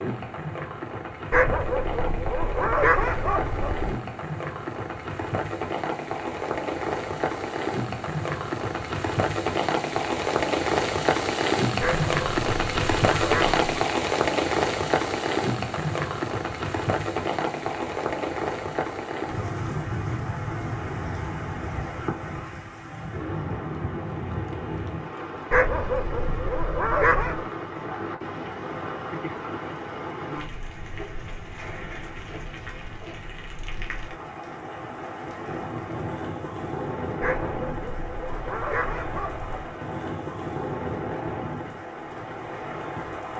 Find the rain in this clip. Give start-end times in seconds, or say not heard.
0.0-43.3.